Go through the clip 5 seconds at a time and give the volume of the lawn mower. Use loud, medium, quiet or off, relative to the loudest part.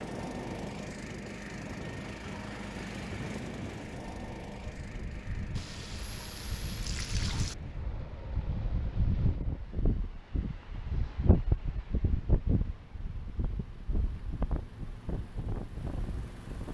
loud, medium, quiet, medium.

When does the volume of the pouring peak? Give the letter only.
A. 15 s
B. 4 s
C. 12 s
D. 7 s
D.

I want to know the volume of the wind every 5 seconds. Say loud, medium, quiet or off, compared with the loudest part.
medium, loud, loud, medium.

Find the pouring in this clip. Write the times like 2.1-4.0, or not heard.
5.5-7.5.